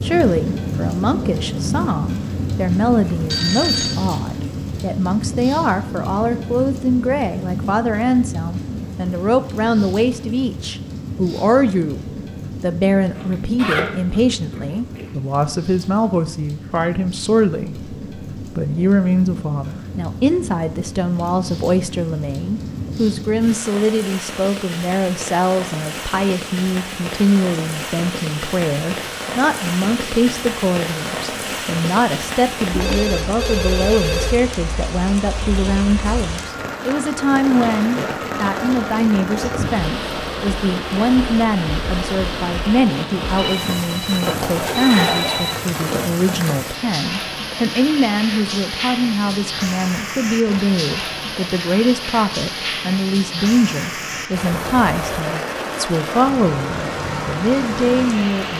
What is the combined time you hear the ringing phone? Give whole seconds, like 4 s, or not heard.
5 s.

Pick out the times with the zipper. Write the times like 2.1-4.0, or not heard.
13.2-15.1, 44.5-45.8.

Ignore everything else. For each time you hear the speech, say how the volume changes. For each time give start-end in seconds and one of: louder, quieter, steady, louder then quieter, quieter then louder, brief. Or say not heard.
0.0-58.5 steady.